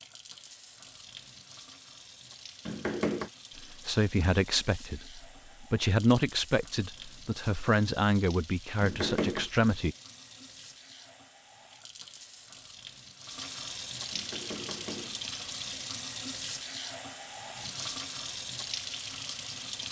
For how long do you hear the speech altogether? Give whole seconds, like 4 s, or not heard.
6 s.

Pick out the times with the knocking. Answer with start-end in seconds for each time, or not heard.
2.6-3.3, 8.8-9.5, 14.1-15.2.